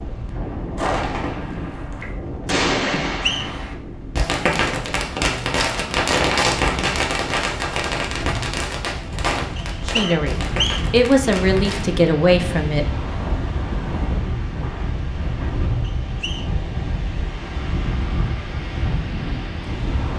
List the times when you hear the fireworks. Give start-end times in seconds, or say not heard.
0.8-11.9.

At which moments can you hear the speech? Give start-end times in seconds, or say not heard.
9.8-12.8.